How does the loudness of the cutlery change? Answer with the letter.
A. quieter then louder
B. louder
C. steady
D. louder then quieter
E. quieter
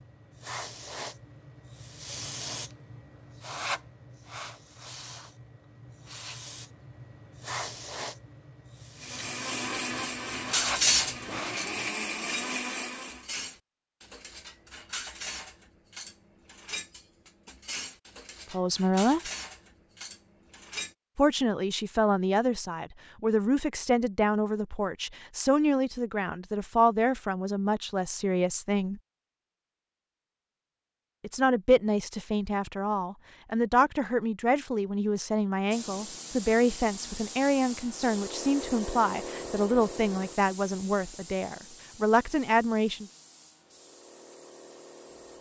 E.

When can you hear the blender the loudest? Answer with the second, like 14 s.
12 s.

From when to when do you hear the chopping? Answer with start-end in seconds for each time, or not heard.
not heard.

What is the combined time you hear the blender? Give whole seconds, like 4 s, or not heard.
4 s.